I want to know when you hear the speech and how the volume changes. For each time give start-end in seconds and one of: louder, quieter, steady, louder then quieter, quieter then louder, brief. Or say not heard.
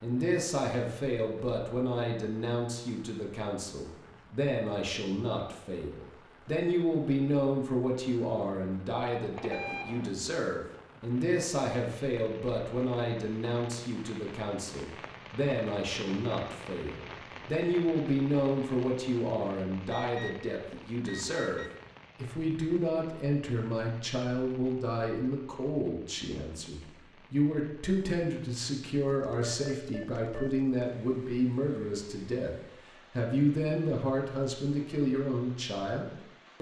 0.0-36.5 steady.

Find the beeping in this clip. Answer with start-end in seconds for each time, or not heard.
9.3-10.1, 19.9-21.7, 29.4-30.5.